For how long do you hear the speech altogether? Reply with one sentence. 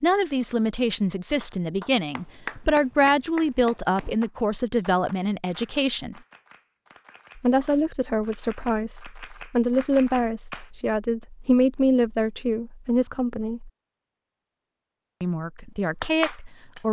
You can hear the speech for 14 seconds altogether.